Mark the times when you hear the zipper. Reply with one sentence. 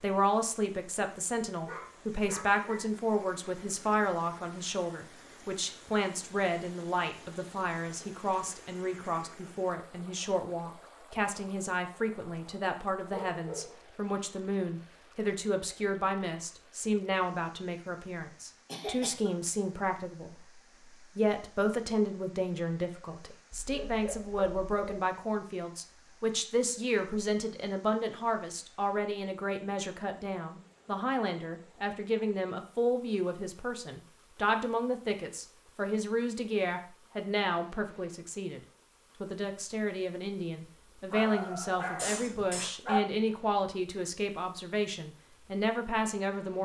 The zipper can't be heard in this clip.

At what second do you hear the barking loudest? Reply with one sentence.
The loudest moment of the barking is at 43 seconds.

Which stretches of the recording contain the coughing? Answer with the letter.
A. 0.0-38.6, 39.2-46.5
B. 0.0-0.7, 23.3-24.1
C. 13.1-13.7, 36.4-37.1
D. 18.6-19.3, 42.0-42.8
D.